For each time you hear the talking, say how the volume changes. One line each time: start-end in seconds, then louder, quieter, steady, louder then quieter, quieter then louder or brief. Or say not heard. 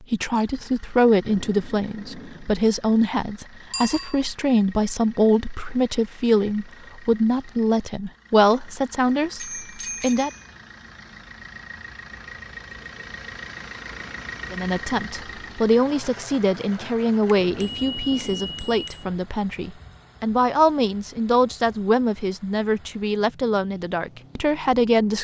0.1-10.3 steady
14.5-25.1 steady.